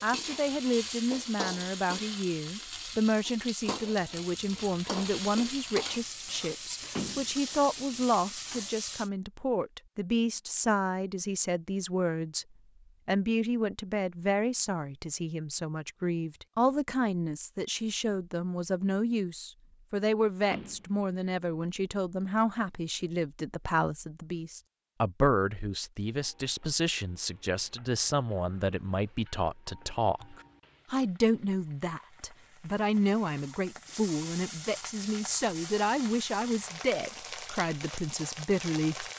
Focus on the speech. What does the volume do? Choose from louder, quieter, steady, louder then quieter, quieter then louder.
steady.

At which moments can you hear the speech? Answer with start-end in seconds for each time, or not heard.
0.0-12.4, 13.1-39.0.